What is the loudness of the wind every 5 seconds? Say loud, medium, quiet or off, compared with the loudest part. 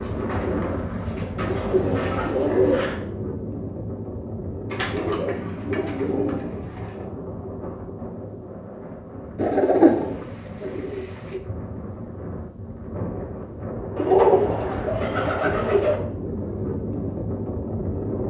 loud, medium, medium, loud.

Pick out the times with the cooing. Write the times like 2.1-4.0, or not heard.
1.4-3.0, 4.7-7.1, 9.3-11.4, 13.9-15.9.